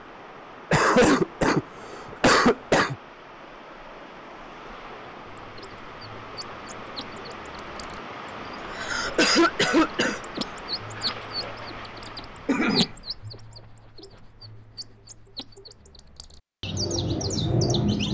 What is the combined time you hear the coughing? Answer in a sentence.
The coughing can be heard for 4 seconds in total.